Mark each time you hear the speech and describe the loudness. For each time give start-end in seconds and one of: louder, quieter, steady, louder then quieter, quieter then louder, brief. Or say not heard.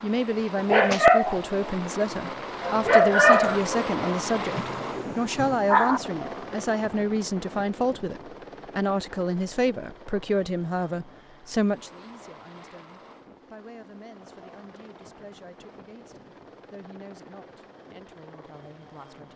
0.0-19.3 quieter.